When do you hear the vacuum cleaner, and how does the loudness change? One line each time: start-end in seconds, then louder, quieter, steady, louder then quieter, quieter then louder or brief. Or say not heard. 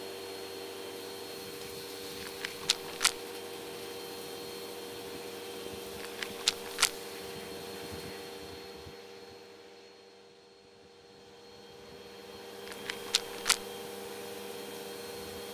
0.0-15.4 quieter then louder.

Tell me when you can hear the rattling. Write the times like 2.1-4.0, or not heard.
2.2-3.1, 6.0-6.9, 12.7-13.6.